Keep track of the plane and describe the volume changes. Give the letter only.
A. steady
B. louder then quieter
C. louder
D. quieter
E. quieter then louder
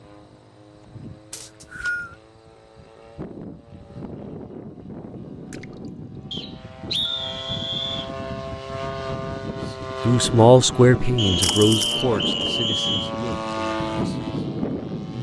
C.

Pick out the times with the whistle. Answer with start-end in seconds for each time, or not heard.
1.3-2.1, 6.3-8.1, 11.2-13.1.